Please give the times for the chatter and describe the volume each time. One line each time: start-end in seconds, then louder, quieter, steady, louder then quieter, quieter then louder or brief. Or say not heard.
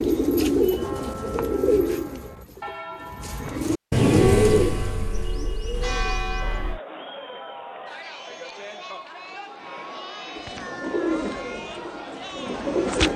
6.3-13.1 steady.